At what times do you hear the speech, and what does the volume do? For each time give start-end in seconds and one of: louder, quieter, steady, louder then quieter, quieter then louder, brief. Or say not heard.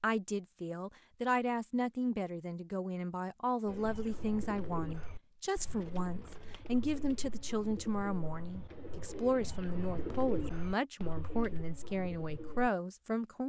0.0-13.4 steady.